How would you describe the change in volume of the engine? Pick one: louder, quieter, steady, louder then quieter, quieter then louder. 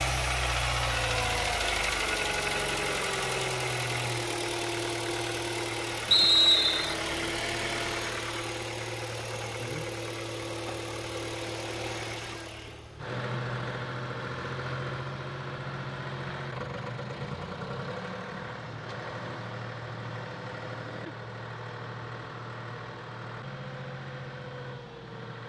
quieter.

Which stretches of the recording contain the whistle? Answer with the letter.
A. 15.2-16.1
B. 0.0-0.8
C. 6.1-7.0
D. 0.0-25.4
C.